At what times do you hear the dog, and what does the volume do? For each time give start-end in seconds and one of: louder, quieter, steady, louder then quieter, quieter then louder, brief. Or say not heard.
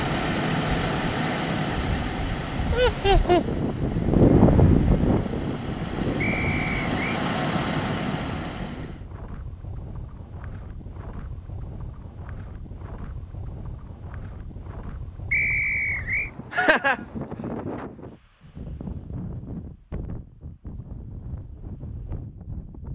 not heard.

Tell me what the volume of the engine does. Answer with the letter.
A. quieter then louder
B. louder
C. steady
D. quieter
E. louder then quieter
A.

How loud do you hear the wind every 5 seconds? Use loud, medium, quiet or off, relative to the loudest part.
loud, medium, quiet, quiet, quiet.